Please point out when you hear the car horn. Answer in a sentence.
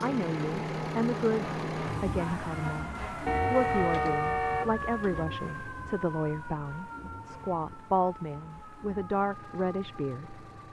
The car horn can be heard from 3.2 to 5.2 s.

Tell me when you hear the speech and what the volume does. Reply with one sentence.
You can hear the speech from 0.0 to 10.6 s, at a steady volume.